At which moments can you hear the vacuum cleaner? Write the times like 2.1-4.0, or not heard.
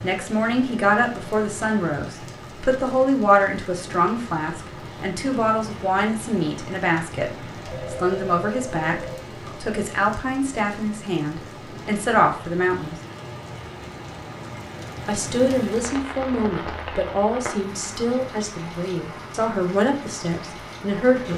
not heard.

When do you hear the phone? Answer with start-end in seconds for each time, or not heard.
7.7-9.2.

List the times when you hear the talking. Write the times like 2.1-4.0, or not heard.
0.0-7.3, 7.9-12.9, 15.1-21.3.